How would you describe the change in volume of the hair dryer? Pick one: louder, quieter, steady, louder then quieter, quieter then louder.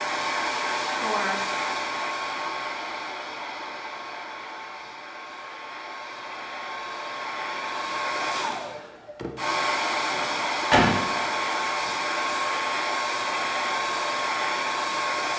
quieter then louder.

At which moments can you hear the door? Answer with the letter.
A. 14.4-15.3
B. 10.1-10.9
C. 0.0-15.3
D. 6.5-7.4
B.